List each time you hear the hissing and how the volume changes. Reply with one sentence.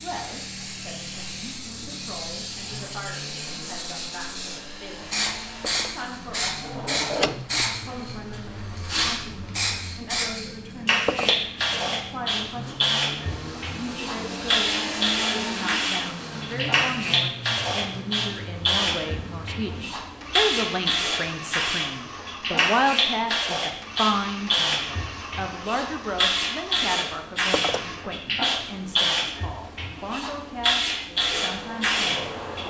You can hear the hissing from 0.0 to 32.6 s, getting louder.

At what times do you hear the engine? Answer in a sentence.
The engine can be heard from 0.0 to 28.1 s and from 31.1 to 32.6 s.